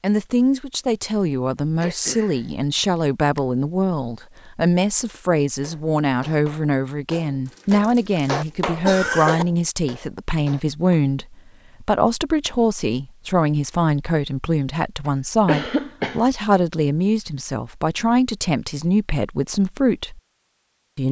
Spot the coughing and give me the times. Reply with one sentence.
The coughing can be heard from 1.8 to 2.5 s, from 7.5 to 9.4 s and from 15.1 to 16.2 s.